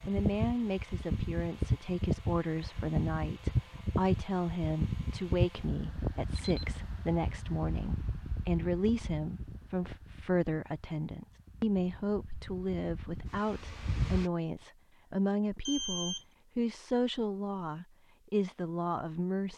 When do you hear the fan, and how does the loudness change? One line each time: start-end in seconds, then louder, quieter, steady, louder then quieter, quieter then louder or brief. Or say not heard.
0.0-14.3 quieter.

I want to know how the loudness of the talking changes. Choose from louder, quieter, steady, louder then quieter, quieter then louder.
steady.